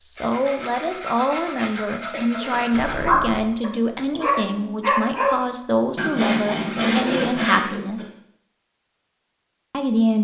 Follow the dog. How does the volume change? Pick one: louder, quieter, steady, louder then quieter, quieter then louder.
quieter.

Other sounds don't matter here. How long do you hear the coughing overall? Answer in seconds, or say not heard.
2 s.